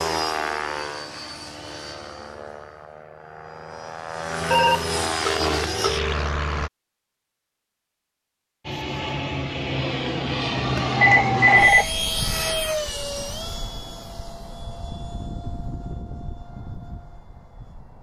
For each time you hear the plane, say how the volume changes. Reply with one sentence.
You can hear the plane from 0.0 to 6.7 s, getting quieter then louder; and from 8.7 to 17.9 s, getting quieter.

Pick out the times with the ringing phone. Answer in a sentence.
You can hear the ringing phone from 4.5 to 6.2 s and from 11.0 to 11.9 s.